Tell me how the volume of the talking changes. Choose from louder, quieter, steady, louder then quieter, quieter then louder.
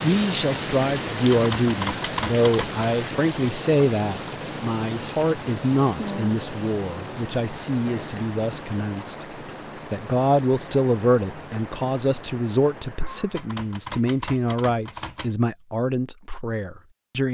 steady.